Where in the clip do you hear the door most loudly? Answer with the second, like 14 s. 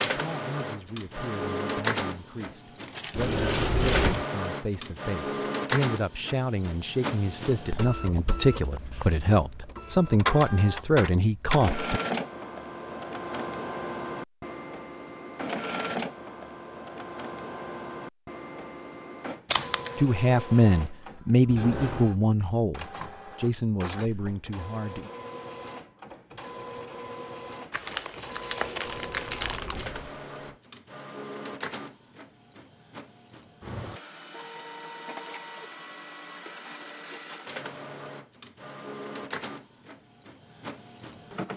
4 s.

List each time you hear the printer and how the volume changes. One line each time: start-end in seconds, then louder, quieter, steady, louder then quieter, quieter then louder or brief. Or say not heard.
0.0-41.5 quieter.